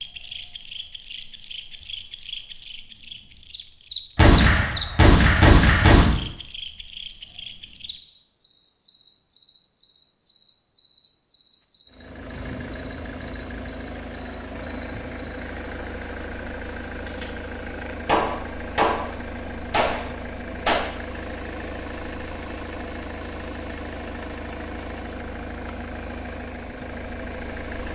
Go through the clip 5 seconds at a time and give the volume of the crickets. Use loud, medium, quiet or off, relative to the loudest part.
loud, loud, loud, loud, loud, medium.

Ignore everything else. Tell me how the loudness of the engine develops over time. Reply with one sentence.
The volume of the engine stays about the same.